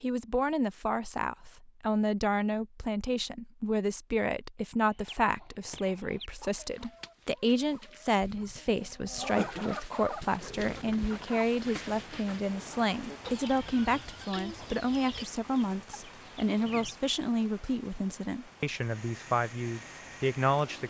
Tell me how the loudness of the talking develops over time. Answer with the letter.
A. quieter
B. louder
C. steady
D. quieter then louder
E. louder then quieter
C.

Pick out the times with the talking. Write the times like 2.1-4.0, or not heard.
0.0-20.8.